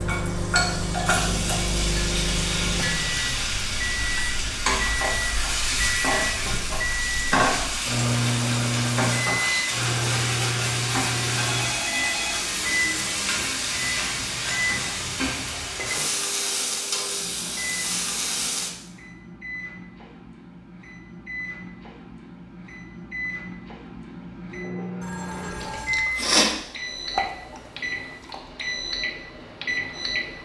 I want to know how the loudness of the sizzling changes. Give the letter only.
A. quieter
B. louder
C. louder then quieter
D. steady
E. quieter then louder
D.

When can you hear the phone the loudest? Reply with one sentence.
The volume of the phone peaks at 12 seconds.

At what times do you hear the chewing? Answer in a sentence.
The chewing can be heard from 25.6 to 28.4 s.